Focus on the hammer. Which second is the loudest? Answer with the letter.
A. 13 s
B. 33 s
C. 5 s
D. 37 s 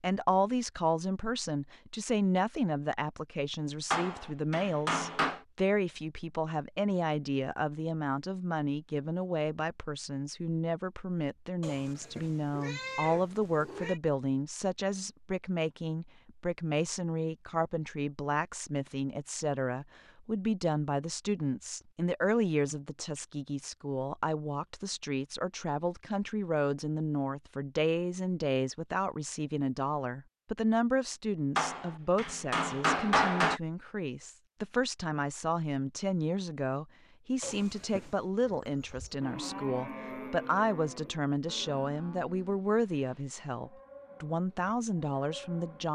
B.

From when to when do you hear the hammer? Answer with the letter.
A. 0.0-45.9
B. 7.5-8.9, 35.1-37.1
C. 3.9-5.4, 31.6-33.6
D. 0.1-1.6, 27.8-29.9
C.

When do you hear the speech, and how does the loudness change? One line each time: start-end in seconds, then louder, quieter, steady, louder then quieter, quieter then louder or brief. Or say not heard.
0.0-45.9 steady.